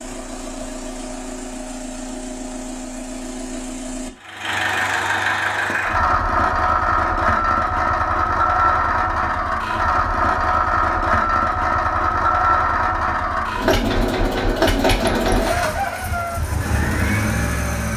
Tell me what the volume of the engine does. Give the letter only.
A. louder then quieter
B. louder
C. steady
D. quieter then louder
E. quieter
B.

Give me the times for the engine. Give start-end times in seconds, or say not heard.
0.0-17.9.